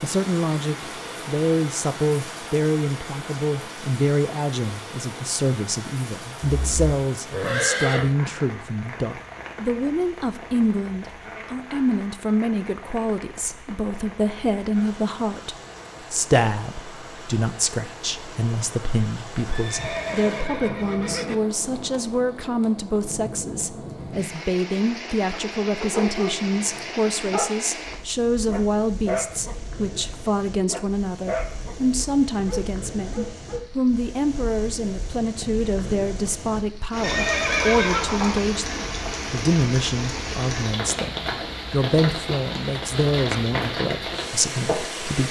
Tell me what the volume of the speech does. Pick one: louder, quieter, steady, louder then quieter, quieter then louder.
steady.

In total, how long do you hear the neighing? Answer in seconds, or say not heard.
5 s.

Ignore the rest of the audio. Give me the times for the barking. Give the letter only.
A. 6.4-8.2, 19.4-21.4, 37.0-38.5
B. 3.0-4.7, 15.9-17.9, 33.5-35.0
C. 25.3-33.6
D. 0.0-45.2
C.